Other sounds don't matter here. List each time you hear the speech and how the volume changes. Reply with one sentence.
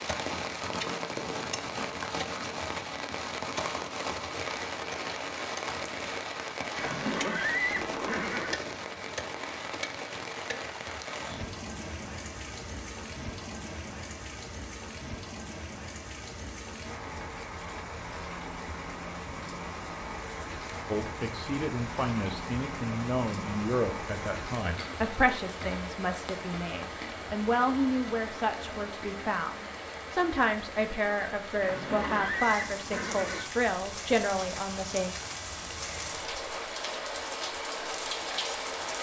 You can hear the speech from 20.9 to 35.1 s, at a steady volume.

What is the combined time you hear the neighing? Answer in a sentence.
The neighing can be heard for 4 seconds in total.